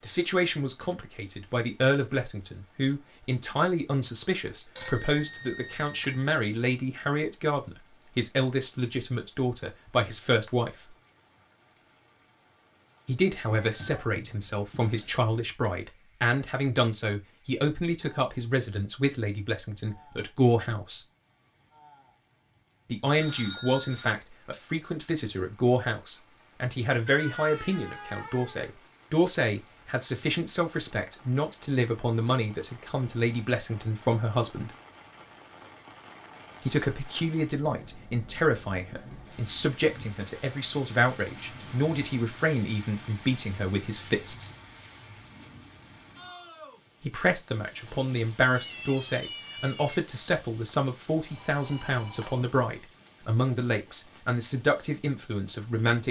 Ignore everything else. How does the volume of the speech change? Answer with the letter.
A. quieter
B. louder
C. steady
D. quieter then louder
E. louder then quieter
C.